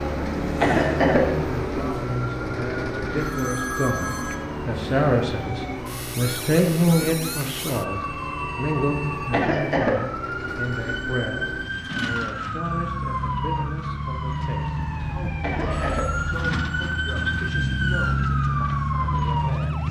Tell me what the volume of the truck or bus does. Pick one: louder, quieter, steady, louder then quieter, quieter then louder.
quieter then louder.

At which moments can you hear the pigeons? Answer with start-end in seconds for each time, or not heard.
not heard.